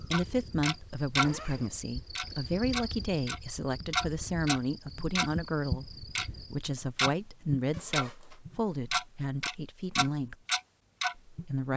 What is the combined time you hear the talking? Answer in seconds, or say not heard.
11 s.